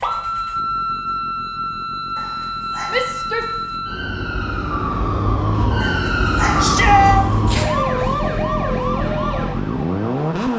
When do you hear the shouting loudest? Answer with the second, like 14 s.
7 s.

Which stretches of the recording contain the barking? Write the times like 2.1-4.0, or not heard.
2.1-3.8, 5.8-7.7.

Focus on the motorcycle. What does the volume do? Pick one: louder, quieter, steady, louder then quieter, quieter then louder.
louder.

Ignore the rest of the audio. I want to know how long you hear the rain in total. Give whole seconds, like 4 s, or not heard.
not heard.